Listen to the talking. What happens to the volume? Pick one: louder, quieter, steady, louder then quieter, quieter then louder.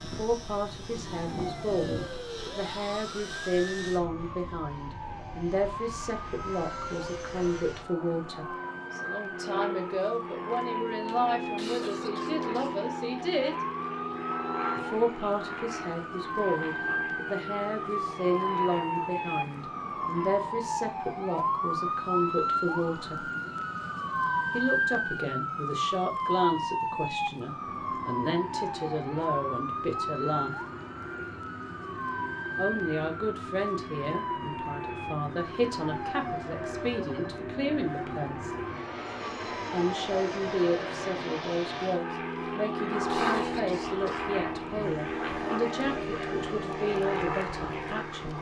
steady.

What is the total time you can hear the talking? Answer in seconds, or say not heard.
43 s.